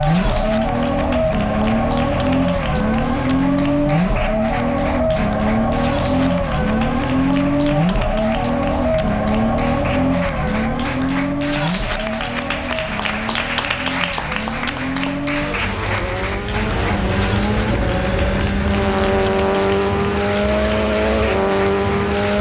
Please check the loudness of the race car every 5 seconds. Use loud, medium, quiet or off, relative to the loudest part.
loud, loud, medium, loud, loud.